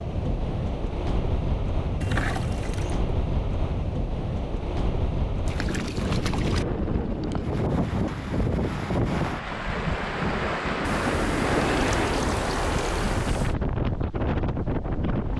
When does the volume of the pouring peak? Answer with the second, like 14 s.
2 s.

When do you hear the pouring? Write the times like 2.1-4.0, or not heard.
2.0-3.1, 5.5-6.7, 10.8-13.6.